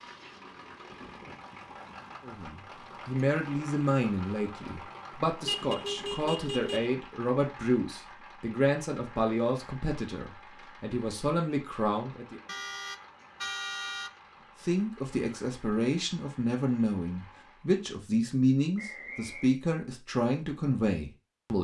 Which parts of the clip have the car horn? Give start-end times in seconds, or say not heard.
5.4-6.9, 12.4-14.1.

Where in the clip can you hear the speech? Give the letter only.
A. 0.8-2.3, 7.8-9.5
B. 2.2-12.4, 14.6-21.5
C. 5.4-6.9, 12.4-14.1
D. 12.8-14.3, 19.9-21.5
B.